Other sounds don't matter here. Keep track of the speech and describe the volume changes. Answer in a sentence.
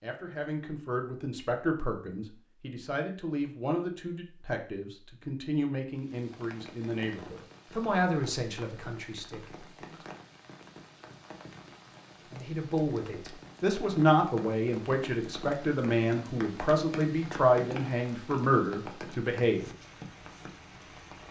The volume of the speech goes up.